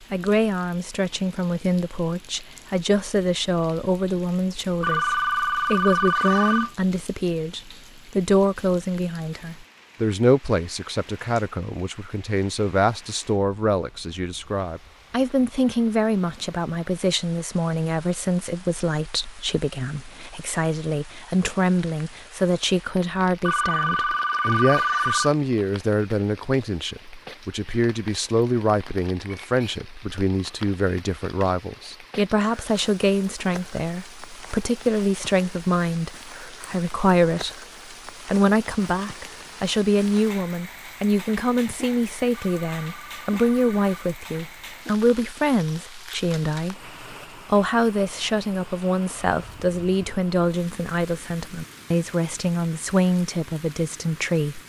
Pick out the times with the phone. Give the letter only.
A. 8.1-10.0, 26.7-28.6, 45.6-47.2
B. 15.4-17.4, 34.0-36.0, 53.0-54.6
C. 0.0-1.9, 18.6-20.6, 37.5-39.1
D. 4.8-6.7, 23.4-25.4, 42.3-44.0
D.